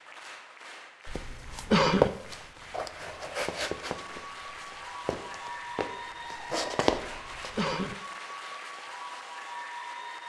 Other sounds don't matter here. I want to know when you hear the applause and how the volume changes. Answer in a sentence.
The applause can be heard from 0.0 to 10.2 s, getting louder.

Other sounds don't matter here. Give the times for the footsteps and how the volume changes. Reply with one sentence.
The footsteps can be heard from 1.1 to 7.7 s, getting quieter then louder.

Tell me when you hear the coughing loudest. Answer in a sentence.
The loudest moment of the coughing is at 2 seconds.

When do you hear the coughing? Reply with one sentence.
You can hear the coughing from 1.1 to 2.1 s and from 7.2 to 8.0 s.